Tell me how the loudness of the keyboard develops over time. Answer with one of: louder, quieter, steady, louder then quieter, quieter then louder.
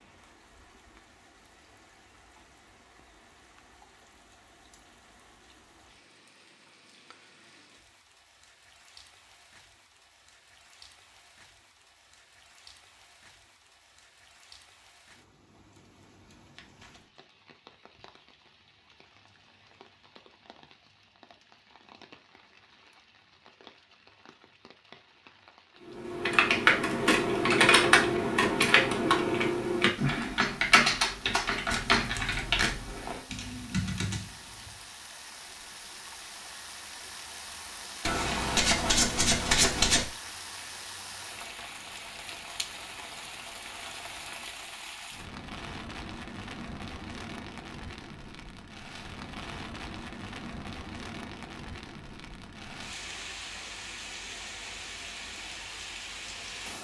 quieter.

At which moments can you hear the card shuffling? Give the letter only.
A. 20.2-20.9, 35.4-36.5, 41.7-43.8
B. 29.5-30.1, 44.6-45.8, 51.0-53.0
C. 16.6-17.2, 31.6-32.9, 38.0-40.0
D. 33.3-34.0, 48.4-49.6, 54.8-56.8
C.